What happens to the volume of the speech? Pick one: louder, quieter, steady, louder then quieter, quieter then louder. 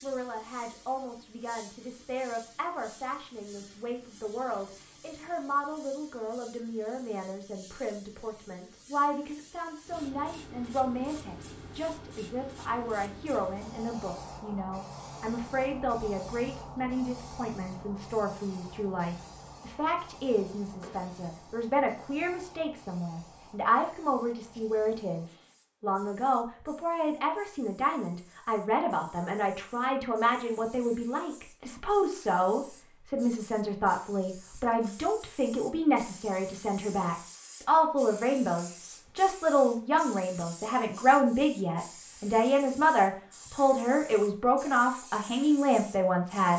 louder.